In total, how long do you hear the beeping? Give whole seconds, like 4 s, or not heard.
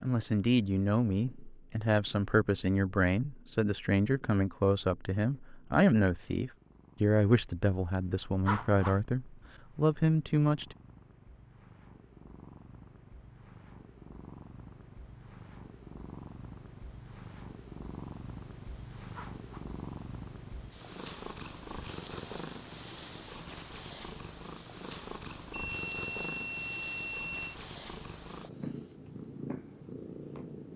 2 s.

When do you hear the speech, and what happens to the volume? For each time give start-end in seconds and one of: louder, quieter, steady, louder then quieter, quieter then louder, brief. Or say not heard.
0.0-10.8 steady.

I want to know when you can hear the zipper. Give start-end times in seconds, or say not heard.
8.4-9.0, 19.1-19.7.